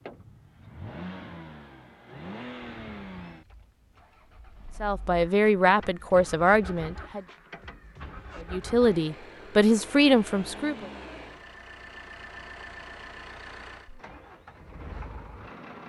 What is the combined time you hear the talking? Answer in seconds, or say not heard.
5 s.